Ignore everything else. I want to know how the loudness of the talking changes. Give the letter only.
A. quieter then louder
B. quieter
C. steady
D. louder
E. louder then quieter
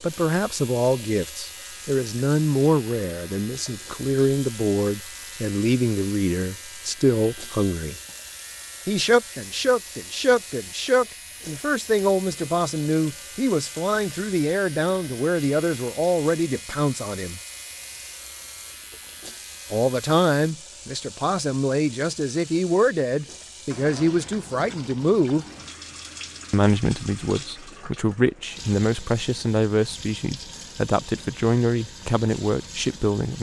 C.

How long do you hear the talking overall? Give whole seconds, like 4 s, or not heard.
29 s.